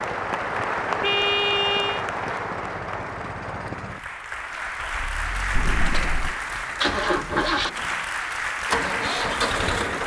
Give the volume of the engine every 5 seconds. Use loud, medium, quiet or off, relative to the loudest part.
quiet, loud.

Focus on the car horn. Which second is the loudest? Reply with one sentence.
The loudest moment of the car horn is at 1 second.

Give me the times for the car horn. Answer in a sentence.
You can hear the car horn from 1.0 to 2.0 s and from 5.5 to 6.4 s.